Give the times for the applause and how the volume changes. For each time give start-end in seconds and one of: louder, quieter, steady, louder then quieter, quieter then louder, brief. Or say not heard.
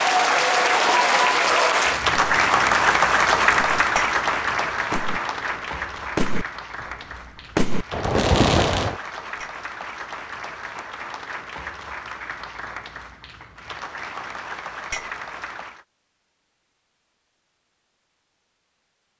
0.0-15.8 quieter.